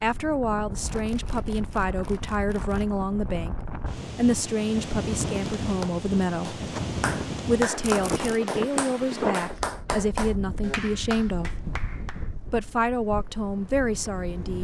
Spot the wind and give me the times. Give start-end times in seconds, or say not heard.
0.0-14.5.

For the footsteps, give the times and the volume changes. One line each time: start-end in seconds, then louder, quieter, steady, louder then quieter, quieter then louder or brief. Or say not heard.
not heard.